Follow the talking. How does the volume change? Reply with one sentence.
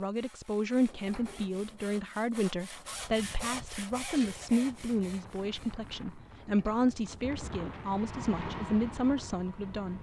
The loudness of the talking stays about the same.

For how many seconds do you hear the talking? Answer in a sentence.
You can hear the talking for 10 seconds altogether.